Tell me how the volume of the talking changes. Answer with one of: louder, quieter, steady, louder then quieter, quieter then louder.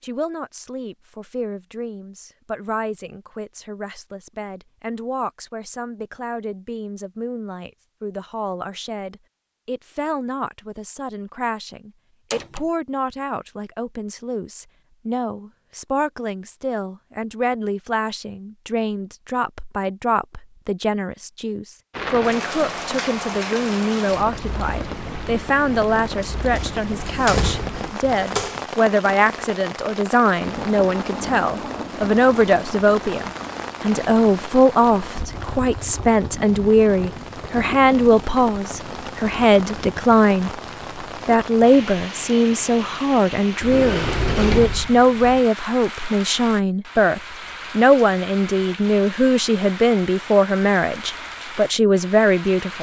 louder.